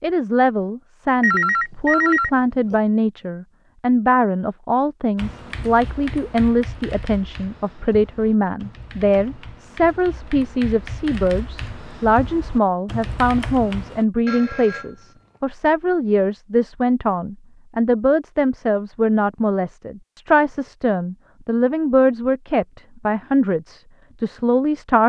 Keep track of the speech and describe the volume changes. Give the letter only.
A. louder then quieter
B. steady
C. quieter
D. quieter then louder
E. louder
B.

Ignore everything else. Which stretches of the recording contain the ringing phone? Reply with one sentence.
The ringing phone can be heard from 1.2 to 2.8 s and from 14.2 to 15.1 s.